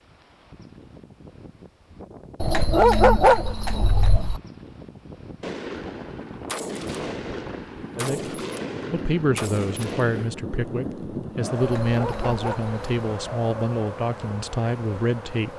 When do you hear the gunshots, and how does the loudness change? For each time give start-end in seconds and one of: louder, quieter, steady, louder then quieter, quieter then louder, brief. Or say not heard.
5.4-10.3 steady.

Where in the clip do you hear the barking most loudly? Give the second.
3 s.